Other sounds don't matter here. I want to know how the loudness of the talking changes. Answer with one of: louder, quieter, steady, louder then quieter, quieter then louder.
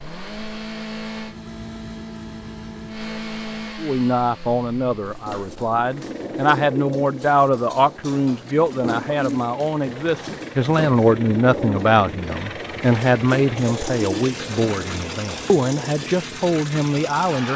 steady.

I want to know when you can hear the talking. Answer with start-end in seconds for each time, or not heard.
3.8-17.5.